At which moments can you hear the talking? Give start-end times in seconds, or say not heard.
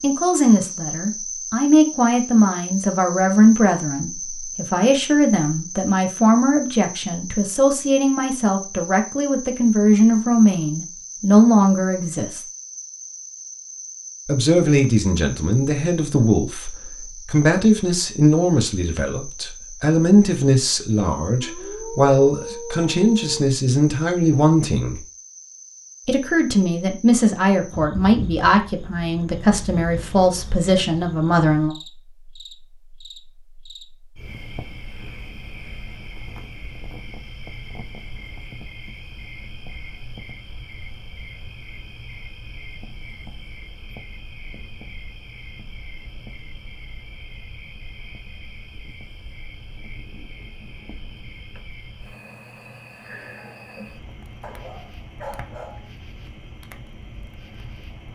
0.0-12.4, 14.2-25.0, 26.1-31.8.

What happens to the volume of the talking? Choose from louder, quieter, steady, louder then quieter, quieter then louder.
steady.